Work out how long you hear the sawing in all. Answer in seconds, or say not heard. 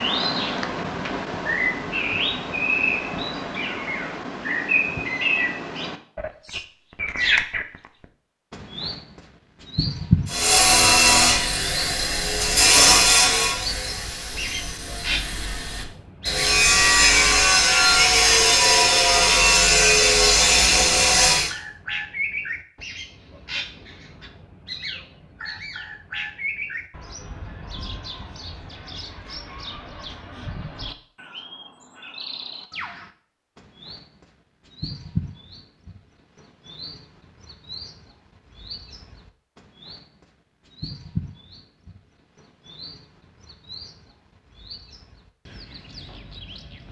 11 s.